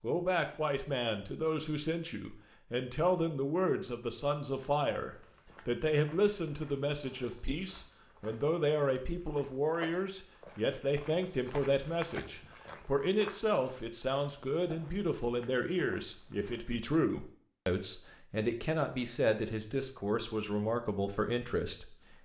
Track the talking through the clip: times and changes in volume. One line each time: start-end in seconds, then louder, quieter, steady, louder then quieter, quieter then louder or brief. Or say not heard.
0.0-22.1 steady.